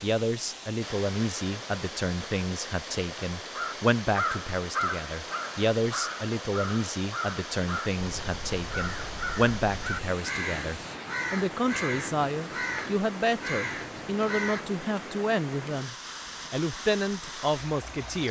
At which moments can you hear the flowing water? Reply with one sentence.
You can hear the flowing water from 0.0 to 18.2 s.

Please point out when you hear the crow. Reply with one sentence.
The crow can be heard from 3.5 to 14.7 s.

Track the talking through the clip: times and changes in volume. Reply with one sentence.
The talking can be heard from 0.0 to 18.2 s, at a steady volume.